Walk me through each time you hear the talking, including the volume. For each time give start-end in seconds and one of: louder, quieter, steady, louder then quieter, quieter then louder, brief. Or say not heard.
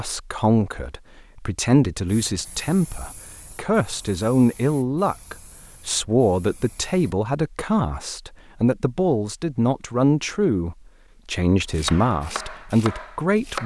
0.0-13.6 steady.